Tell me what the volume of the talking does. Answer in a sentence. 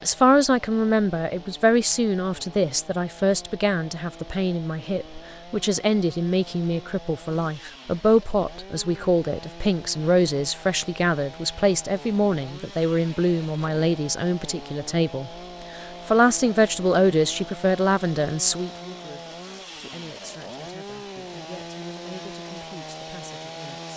The volume of the talking goes down.